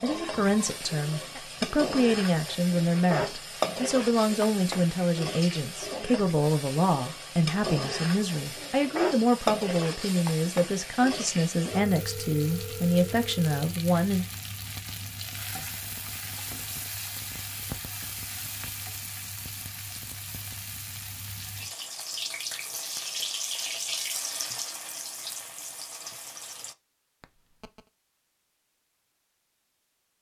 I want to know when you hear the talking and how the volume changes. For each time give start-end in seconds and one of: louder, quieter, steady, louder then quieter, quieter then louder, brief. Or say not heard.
0.0-14.2 steady.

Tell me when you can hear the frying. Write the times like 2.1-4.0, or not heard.
0.0-26.8.